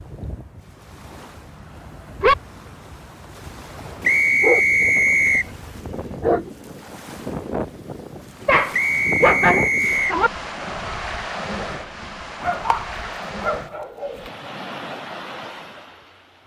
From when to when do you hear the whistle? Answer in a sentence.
The whistle can be heard from 4.0 to 5.5 s and from 8.7 to 10.2 s.